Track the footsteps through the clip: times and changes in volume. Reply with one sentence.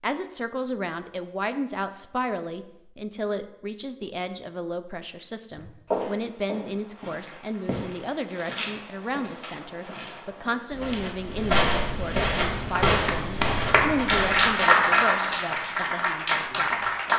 You can hear the footsteps from 5.5 to 14.7 s, getting quieter then louder.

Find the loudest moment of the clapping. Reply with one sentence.
The loudest moment of the clapping is at 15 seconds.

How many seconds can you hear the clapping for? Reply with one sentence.
The clapping can be heard for 5 seconds in total.